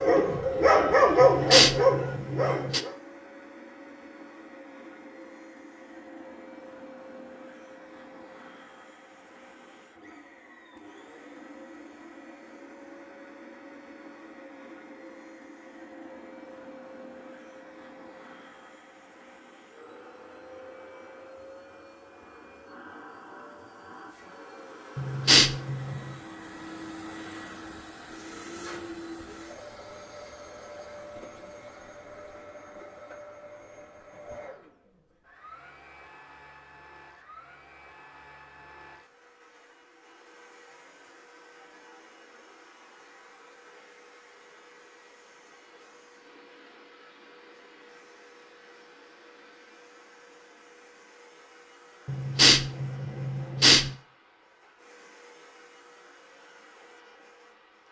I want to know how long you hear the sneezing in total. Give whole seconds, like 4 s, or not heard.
5 s.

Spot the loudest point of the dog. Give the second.
1 s.